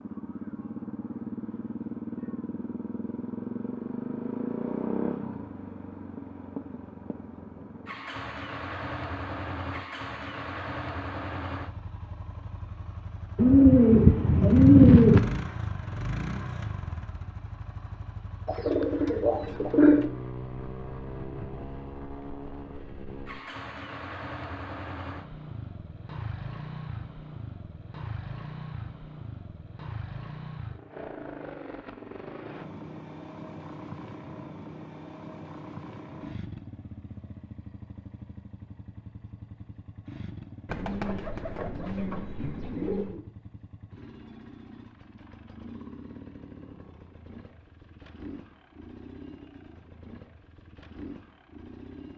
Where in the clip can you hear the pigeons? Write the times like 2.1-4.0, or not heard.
13.3-15.2, 18.4-20.1, 40.6-43.2.